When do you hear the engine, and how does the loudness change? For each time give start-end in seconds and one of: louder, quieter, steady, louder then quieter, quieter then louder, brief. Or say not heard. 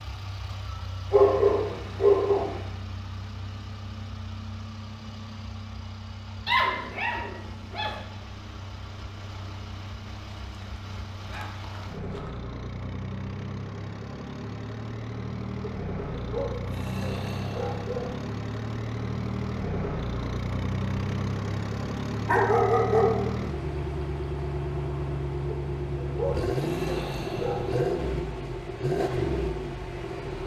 0.0-30.4 louder.